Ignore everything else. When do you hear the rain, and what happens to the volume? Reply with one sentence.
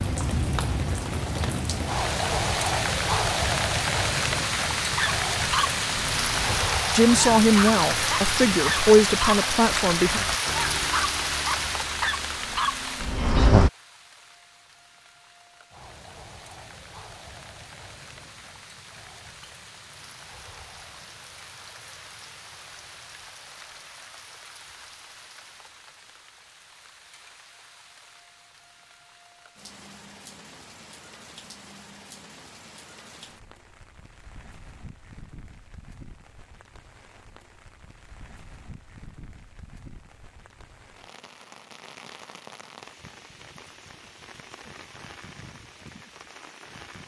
The rain can be heard from 0.0 to 47.0 s, getting quieter.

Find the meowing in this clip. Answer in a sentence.
You can't hear the meowing here.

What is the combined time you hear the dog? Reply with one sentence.
The dog can be heard for 9 seconds in total.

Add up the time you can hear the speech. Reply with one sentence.
The speech can be heard for 3 seconds in total.